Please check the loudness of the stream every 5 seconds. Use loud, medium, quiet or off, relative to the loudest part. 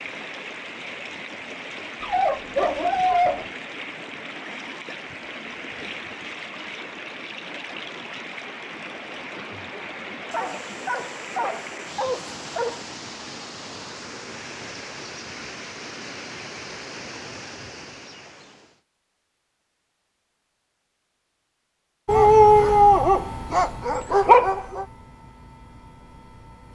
loud, loud, loud, loud, off, off.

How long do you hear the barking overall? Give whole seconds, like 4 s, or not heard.
7 s.